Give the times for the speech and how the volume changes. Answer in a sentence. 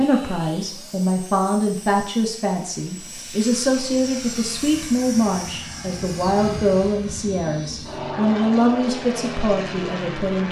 The speech can be heard from 0.0 to 10.4 s, at a steady volume.